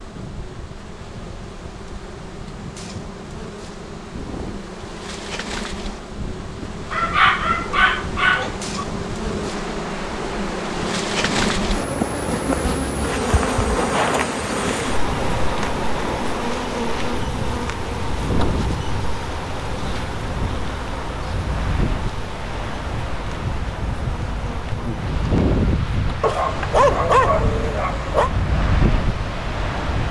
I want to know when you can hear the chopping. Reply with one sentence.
The chopping can't be heard in this clip.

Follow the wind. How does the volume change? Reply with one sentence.
The volume of the wind goes up.